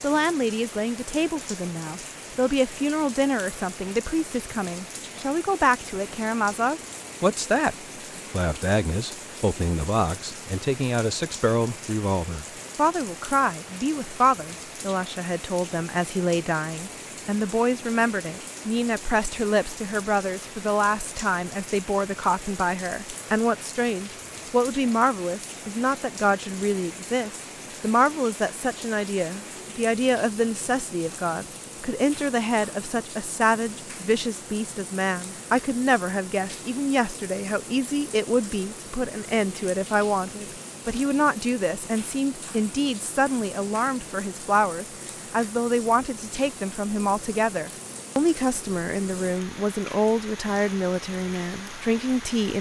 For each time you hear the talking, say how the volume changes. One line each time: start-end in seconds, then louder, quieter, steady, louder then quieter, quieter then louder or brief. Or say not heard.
0.0-52.5 steady.